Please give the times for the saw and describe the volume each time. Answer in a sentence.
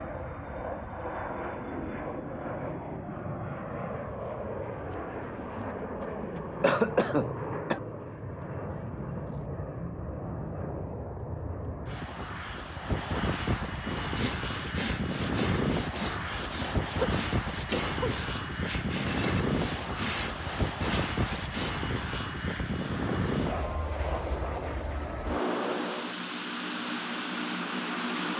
You can hear the saw from 13.7 to 22.0 s, at a steady volume.